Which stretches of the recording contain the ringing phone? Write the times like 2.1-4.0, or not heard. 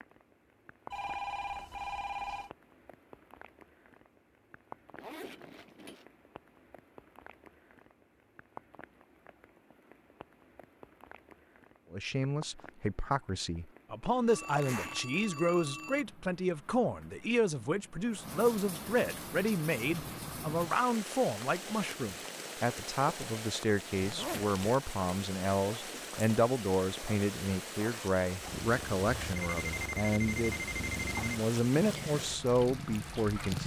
0.9-2.5, 14.0-16.1, 29.4-31.3.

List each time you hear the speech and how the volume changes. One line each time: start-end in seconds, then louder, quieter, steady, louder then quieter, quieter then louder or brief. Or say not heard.
11.9-33.6 steady.